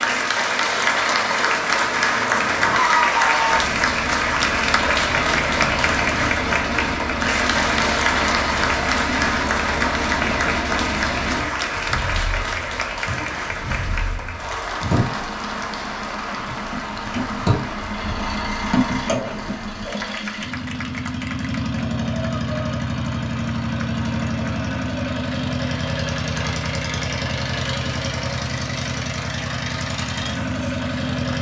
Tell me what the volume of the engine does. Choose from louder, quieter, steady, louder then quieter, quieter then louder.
steady.